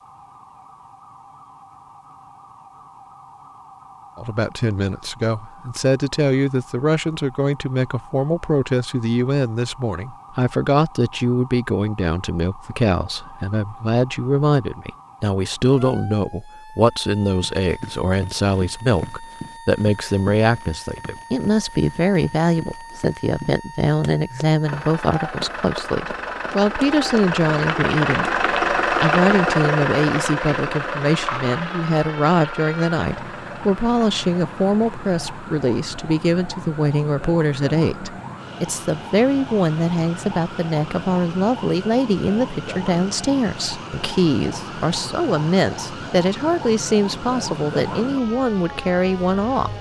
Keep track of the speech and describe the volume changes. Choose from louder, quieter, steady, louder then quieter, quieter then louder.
steady.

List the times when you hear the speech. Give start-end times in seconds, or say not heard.
4.2-49.7.